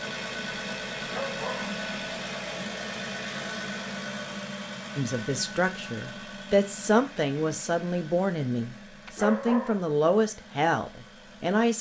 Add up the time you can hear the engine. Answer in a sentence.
The engine can be heard for 12 seconds in total.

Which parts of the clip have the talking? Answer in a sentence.
The talking can be heard from 5.0 to 11.7 s.